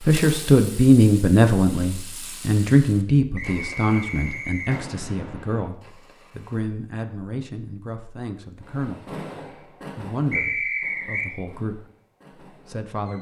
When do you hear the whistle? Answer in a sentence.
The whistle can be heard from 3.4 to 4.8 s and from 10.3 to 11.3 s.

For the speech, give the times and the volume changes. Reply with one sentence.
You can hear the speech from 0.1 to 9.2 s, getting quieter; briefly from 9.9 to 11.8 s; and briefly from 12.7 to 13.1 s.